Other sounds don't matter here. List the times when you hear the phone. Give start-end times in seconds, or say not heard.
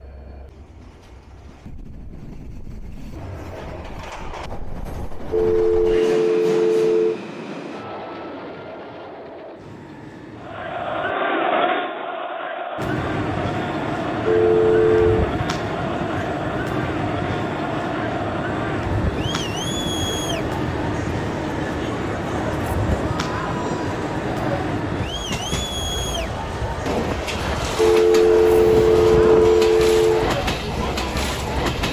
5.3-7.2, 14.2-15.3, 27.8-30.3.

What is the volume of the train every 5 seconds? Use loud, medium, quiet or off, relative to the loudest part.
quiet, medium, loud, loud, loud, loud, loud.